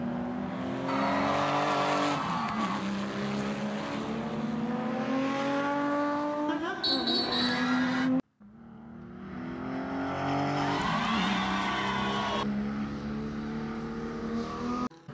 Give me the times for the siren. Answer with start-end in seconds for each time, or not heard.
not heard.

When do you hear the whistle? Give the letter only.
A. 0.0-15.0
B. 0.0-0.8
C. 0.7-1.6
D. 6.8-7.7
D.